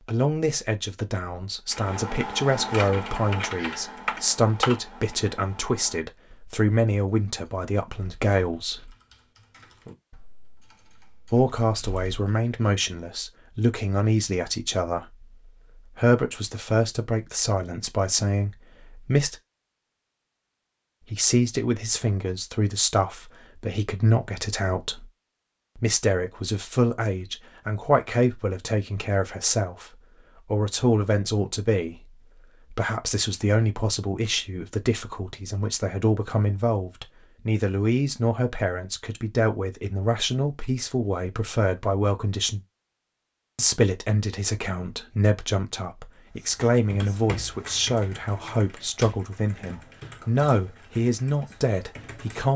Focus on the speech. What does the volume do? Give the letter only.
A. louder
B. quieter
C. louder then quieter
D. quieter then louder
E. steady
E.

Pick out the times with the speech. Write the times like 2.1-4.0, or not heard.
0.1-8.9, 11.3-19.4, 21.1-25.1, 25.8-42.6, 43.5-52.5.